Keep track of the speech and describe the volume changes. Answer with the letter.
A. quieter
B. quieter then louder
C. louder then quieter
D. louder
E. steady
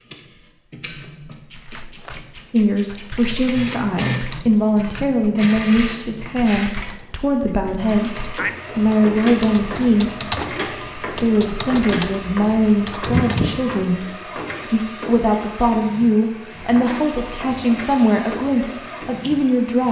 E.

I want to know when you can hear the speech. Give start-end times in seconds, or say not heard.
2.5-10.2, 11.0-19.8.